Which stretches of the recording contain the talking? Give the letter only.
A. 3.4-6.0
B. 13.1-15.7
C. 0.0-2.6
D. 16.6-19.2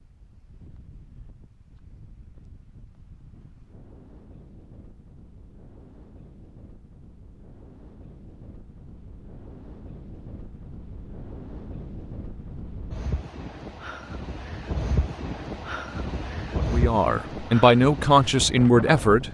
D.